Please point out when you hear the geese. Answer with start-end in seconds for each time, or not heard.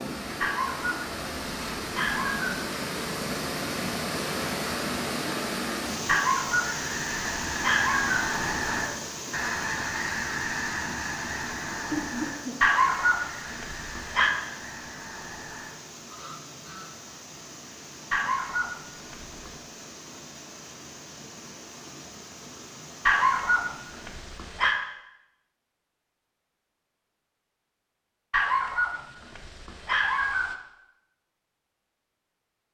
6.5-16.9.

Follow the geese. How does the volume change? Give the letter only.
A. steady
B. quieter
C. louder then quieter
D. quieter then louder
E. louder
B.